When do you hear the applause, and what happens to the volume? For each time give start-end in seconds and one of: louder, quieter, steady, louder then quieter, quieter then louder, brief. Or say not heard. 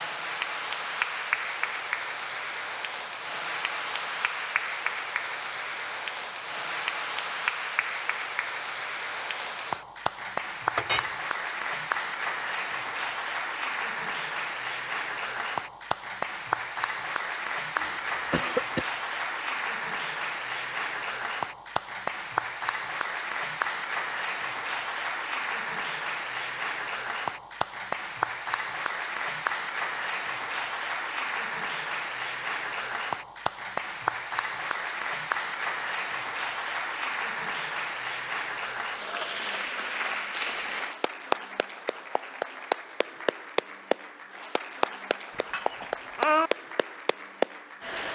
0.0-48.1 steady.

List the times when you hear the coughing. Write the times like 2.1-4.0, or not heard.
17.8-18.9.